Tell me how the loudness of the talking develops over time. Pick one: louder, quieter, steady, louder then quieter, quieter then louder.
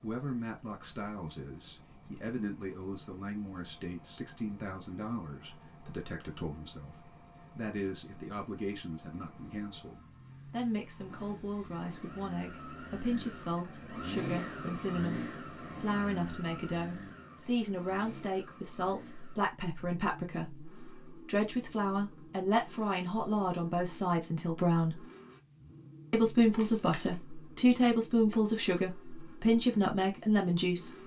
louder.